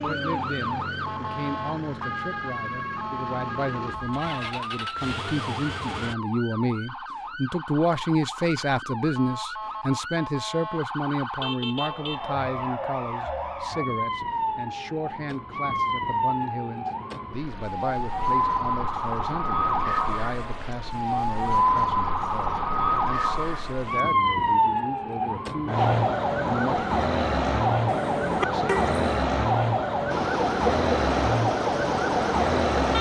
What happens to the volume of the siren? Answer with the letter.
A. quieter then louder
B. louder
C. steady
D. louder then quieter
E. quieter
B.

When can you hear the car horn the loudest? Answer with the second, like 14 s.
29 s.